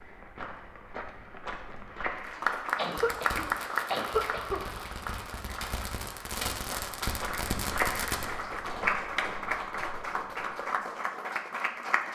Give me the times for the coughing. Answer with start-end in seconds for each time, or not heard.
2.8-4.8.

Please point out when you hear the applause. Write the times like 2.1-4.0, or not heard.
2.1-12.0.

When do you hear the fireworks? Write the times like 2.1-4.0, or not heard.
2.9-8.2.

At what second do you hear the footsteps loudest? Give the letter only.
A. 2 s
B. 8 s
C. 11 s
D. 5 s
B.